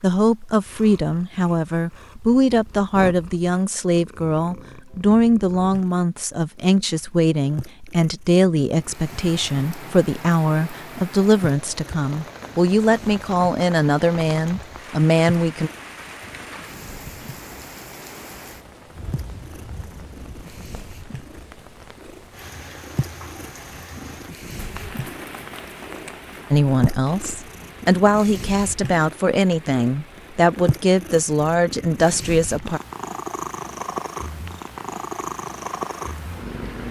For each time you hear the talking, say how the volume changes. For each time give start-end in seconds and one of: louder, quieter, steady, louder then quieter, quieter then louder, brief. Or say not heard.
0.0-15.7 steady
26.5-32.8 steady.